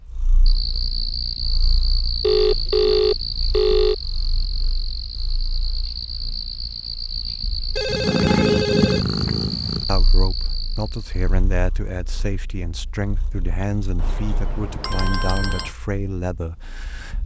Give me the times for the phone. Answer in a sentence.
The phone can be heard from 2.2 to 4.0 s, from 7.8 to 9.1 s and from 13.9 to 15.7 s.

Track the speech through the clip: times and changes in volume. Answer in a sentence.
The speech can be heard from 9.8 to 17.2 s, at a steady volume.